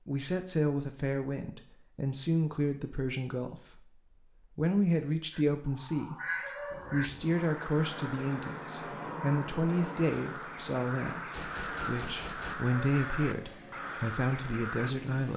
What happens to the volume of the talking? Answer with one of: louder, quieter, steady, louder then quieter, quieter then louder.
steady.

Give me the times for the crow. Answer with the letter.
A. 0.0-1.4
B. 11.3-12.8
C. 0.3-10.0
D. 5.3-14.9
D.